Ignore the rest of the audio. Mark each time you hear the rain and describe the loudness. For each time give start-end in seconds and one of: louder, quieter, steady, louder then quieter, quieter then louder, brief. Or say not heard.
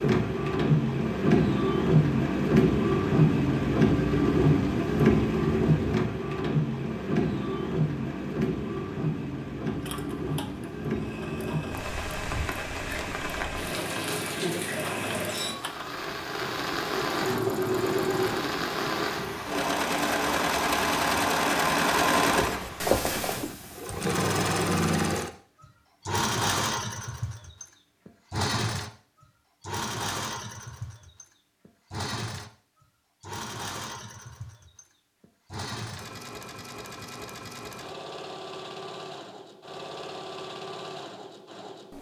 0.0-22.9 quieter.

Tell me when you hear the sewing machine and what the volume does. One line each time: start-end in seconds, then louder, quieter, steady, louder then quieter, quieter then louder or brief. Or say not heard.
9.7-41.9 louder then quieter.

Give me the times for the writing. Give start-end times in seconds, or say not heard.
22.3-23.6.